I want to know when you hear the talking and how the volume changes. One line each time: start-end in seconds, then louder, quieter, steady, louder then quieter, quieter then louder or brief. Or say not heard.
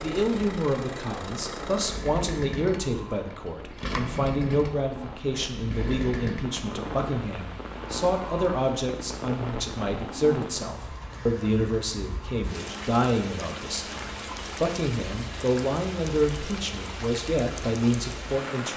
0.0-18.7 steady.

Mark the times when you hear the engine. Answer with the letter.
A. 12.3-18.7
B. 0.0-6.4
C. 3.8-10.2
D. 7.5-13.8
B.